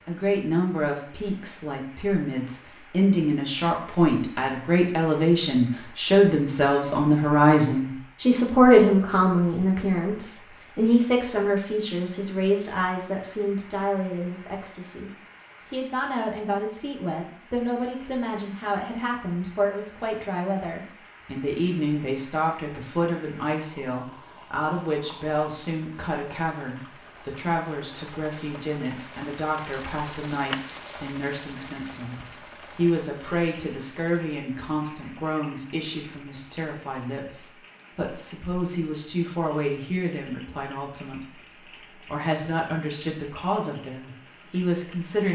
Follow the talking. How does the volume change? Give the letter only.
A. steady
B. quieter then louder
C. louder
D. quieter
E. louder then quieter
D.